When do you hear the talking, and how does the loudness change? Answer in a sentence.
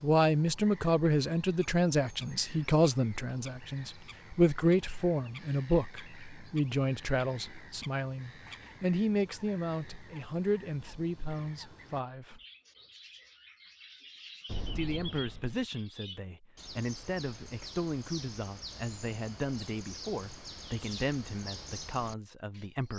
The talking can be heard from 0.0 to 12.4 s, getting quieter; and from 14.8 to 22.9 s, at a steady volume.